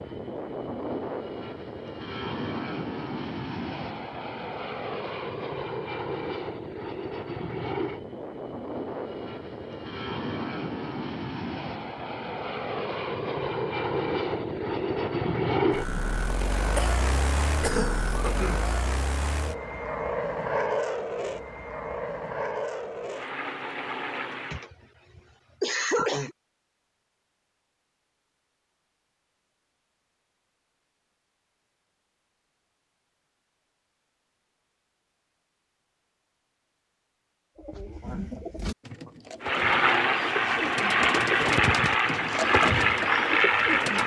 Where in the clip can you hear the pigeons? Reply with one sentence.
You can hear the pigeons from 37.5 to 44.0 s.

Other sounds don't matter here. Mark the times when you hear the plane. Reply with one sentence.
You can hear the plane from 0.0 to 24.6 s and from 39.4 to 44.0 s.